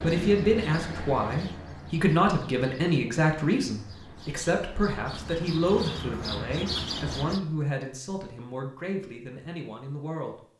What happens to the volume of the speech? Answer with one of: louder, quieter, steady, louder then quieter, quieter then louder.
quieter.